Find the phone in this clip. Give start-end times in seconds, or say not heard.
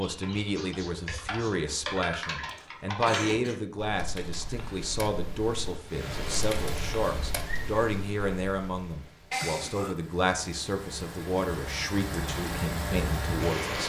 not heard.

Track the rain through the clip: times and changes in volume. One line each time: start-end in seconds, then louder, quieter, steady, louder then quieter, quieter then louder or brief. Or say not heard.
5.8-13.8 quieter then louder.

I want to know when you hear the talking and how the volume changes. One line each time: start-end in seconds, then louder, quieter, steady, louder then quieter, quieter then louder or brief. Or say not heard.
0.0-13.8 steady.